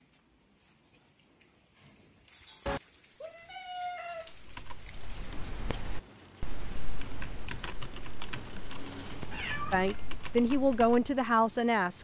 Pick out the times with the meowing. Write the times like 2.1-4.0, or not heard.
2.6-4.3, 9.3-10.2.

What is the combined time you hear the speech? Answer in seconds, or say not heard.
2 s.